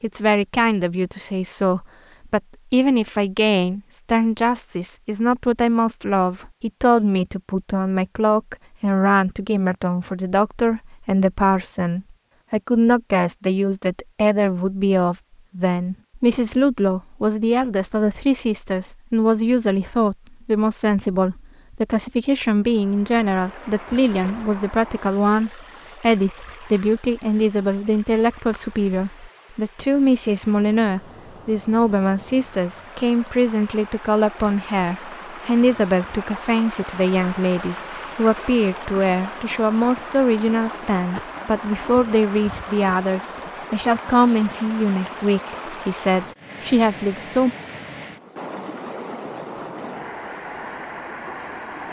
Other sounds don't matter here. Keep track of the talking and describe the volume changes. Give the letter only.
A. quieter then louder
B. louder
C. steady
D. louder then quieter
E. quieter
C.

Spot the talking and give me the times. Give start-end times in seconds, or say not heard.
0.0-47.5.